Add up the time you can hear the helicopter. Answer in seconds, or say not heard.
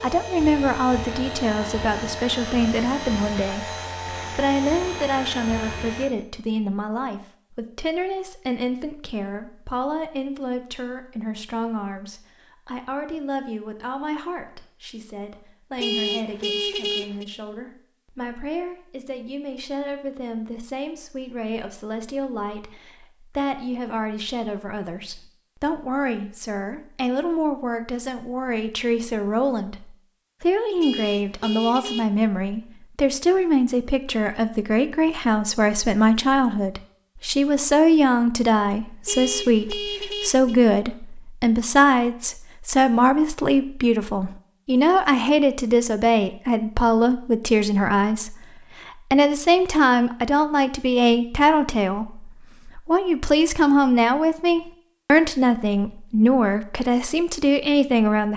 6 s.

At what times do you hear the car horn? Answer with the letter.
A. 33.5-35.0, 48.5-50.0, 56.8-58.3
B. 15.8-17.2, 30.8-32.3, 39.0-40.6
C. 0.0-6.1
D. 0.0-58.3
B.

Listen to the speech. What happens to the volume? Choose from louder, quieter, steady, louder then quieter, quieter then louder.
quieter then louder.